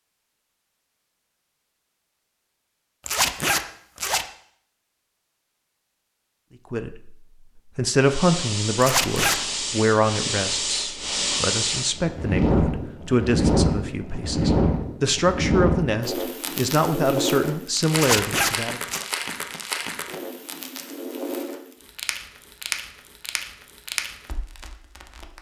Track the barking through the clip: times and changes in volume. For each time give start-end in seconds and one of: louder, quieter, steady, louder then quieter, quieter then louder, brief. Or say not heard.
not heard.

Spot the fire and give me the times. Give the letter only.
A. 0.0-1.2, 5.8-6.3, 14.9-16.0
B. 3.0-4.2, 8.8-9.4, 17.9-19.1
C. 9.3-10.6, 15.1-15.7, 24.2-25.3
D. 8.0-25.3
D.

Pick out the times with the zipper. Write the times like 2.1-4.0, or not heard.
3.0-4.2, 8.8-9.4, 17.9-19.1.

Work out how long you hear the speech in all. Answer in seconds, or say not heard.
12 s.